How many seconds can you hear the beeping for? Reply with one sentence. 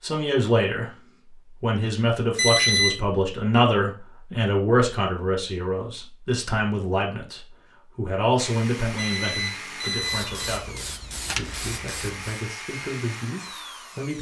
The beeping can be heard for 2 seconds in total.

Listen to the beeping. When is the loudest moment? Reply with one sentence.
The volume of the beeping peaks at 3 seconds.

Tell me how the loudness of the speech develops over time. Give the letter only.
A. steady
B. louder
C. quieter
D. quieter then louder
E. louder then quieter
C.